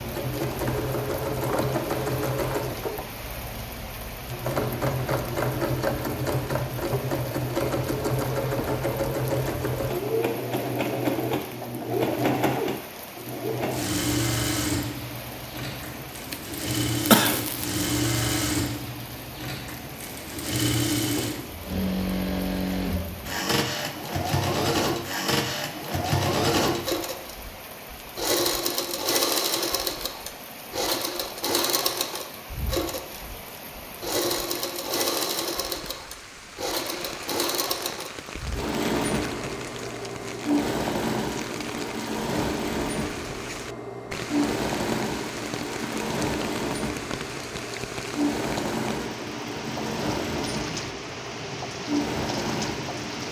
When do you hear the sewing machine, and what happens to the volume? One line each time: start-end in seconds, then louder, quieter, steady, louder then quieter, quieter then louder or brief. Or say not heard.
0.0-53.2 steady.